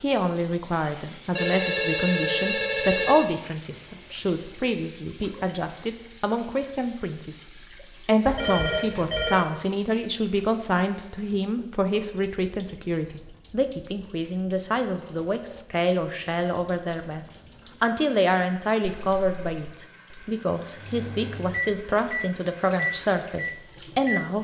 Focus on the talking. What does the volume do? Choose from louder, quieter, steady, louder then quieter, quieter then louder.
steady.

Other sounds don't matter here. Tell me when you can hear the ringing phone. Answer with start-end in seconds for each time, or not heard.
1.4-3.2, 8.2-9.4, 18.8-19.8.